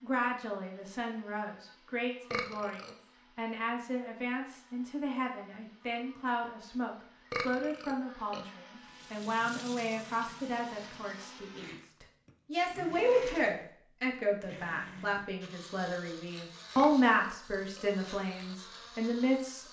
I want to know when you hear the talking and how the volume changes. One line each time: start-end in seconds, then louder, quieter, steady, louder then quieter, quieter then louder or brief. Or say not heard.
0.0-19.6 louder.